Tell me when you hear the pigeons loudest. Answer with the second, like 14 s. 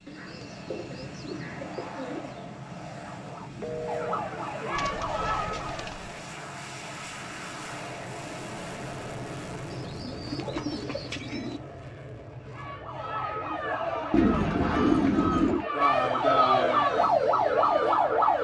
15 s.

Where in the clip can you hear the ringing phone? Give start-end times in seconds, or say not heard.
3.6-4.2.